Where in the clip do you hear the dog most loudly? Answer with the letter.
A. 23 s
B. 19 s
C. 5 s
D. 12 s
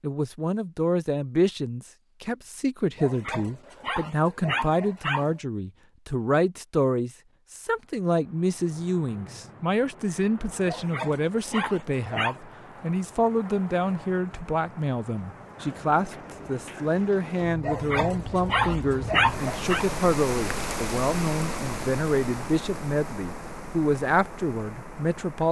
B.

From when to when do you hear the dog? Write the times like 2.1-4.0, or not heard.
3.0-5.3, 10.7-12.4, 17.6-19.9.